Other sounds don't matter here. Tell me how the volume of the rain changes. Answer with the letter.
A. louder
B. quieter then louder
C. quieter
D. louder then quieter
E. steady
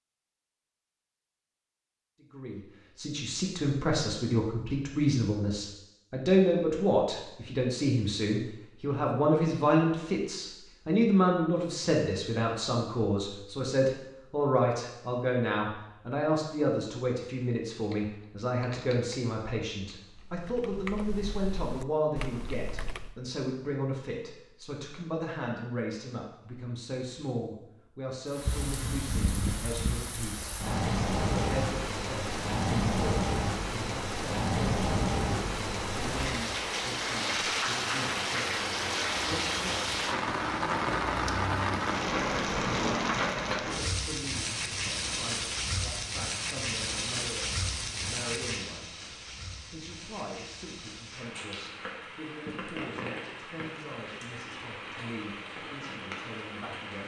C.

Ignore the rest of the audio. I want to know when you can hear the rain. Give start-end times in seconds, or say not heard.
28.2-57.0.